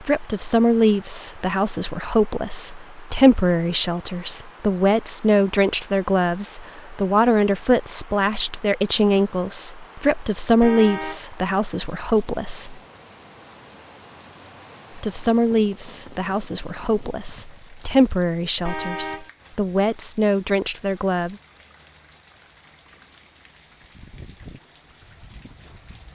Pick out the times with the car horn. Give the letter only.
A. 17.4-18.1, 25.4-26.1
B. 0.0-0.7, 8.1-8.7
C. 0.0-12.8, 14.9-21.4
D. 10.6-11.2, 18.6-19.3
D.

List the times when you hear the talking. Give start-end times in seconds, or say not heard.
0.0-12.8, 14.9-21.4.